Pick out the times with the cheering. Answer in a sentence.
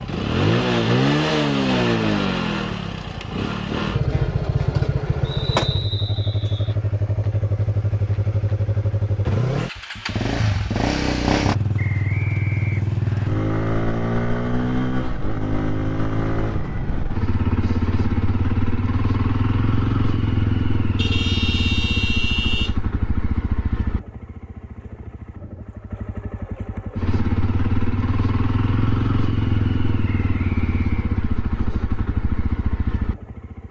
You can't hear the cheering here.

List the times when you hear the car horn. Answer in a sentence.
You can hear the car horn from 20.9 to 22.8 s.